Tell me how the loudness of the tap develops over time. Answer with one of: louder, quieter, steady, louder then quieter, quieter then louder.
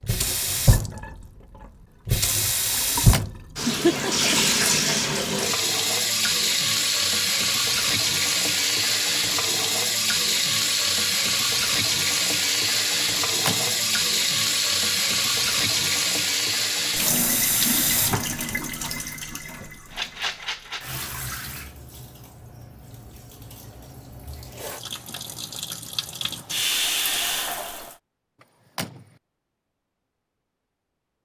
quieter.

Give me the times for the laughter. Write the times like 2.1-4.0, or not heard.
3.6-4.4.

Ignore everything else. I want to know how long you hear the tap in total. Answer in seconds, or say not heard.
28 s.